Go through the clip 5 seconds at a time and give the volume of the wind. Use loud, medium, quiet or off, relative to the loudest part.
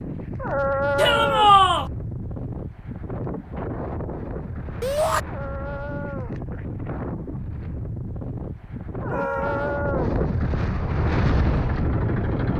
medium, medium, loud.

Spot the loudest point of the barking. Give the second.
1 s.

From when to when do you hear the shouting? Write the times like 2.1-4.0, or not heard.
0.9-1.9, 4.8-5.2, 9.1-9.8.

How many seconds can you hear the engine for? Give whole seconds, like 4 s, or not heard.
2 s.